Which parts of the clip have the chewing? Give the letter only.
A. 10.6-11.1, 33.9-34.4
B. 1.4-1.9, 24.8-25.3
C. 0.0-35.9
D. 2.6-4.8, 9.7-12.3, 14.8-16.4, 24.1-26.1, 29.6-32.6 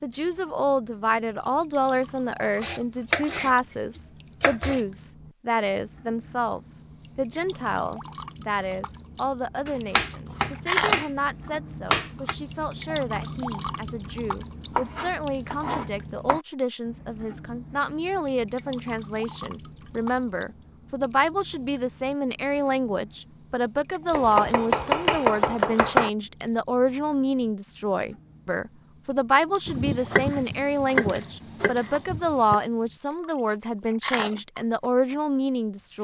A.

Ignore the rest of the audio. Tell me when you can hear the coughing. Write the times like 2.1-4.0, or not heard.
not heard.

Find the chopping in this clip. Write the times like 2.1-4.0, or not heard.
2.6-4.8, 9.7-12.3, 14.8-16.4, 24.1-26.1, 29.6-32.6.